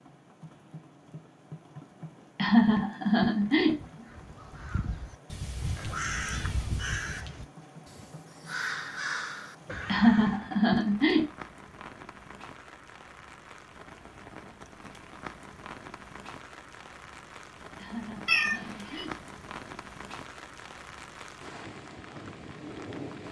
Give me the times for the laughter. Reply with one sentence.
You can hear the laughter from 2.4 to 3.9 s, from 9.8 to 11.2 s and from 17.8 to 19.2 s.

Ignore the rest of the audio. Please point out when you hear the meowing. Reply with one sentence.
The meowing can be heard from 5.3 to 7.2 s and from 18.2 to 19.1 s.